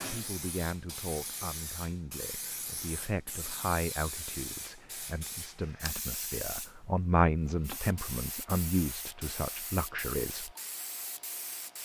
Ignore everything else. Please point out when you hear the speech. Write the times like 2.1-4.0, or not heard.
0.0-10.5.